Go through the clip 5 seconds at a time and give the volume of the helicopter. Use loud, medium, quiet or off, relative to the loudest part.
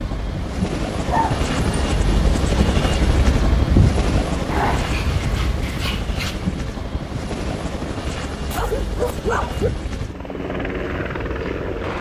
loud, medium, loud.